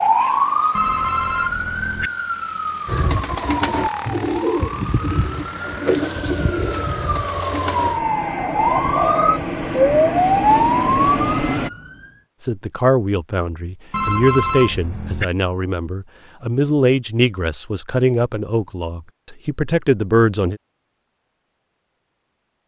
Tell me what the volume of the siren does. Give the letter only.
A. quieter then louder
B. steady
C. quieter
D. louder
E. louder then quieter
A.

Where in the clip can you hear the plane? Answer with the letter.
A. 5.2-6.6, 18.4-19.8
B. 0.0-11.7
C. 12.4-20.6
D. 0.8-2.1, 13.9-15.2
B.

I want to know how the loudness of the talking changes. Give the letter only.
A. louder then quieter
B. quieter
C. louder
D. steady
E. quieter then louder
D.